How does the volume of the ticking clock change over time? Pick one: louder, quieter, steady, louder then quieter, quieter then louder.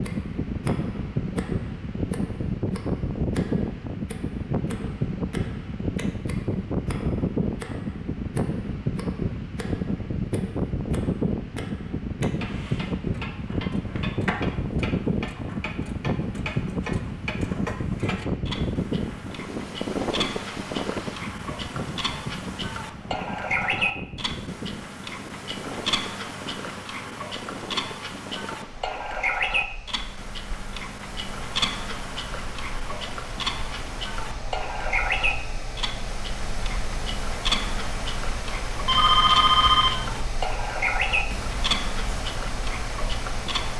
louder.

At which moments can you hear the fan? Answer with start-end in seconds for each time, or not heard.
0.0-43.7.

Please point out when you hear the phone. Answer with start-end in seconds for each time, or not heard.
38.9-40.2.